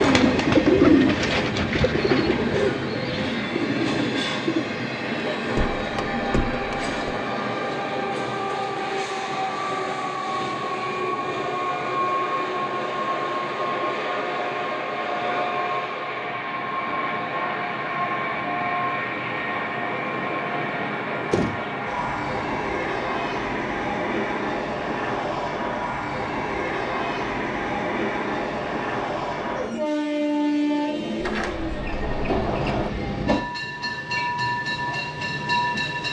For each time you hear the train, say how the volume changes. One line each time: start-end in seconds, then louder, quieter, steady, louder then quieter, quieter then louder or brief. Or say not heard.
0.0-36.0 steady.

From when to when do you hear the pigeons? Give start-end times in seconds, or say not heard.
0.0-4.7.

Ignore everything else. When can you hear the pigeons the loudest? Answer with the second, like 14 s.
1 s.